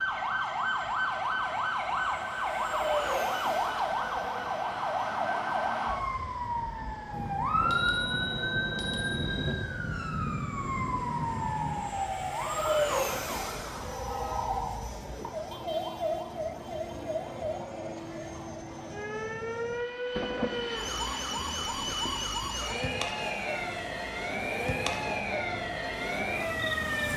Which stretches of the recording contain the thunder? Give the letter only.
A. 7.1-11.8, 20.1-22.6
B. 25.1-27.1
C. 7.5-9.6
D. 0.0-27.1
A.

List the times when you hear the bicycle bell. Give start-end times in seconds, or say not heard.
7.5-9.6.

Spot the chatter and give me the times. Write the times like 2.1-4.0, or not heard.
not heard.